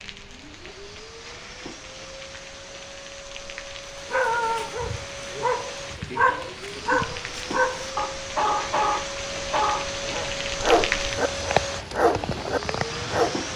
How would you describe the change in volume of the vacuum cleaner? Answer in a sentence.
The loudness of the vacuum cleaner goes up.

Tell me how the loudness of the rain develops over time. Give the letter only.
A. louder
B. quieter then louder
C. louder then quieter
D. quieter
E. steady
A.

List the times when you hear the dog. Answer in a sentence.
You can hear the dog from 4.0 to 13.3 s.